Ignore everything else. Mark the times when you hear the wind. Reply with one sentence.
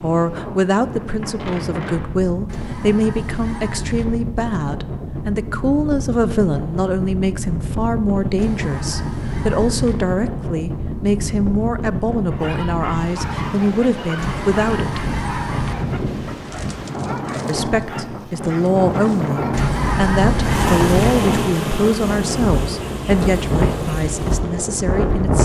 The wind can be heard from 0.0 to 25.3 s.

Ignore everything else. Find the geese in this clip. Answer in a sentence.
You can hear the geese from 2.5 to 4.0 s, from 8.3 to 9.9 s, from 14.2 to 15.8 s and from 19.5 to 21.1 s.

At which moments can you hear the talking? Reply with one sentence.
The talking can be heard from 0.0 to 15.2 s and from 17.4 to 25.3 s.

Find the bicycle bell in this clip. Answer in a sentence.
The bicycle bell can't be heard in this clip.